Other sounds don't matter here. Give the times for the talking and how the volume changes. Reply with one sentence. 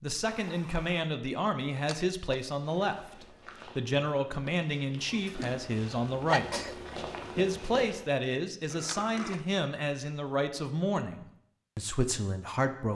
You can hear the talking from 0.0 to 12.8 s, at a steady volume.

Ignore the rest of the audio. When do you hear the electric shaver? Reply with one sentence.
You can't hear the electric shaver here.